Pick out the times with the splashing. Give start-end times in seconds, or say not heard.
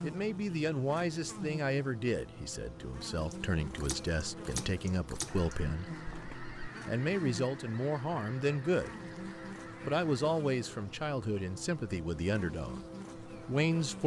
3.1-6.5.